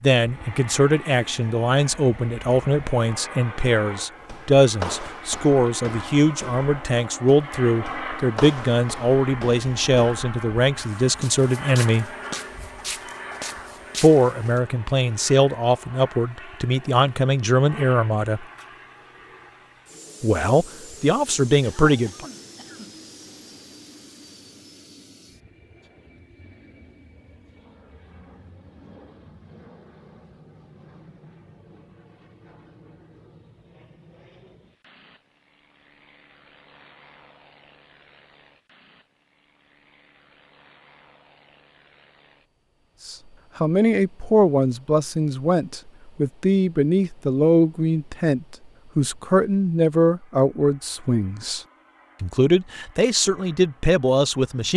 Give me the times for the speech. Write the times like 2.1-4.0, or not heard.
0.0-12.1, 14.0-18.4, 20.2-22.2, 43.0-51.6, 52.2-54.7.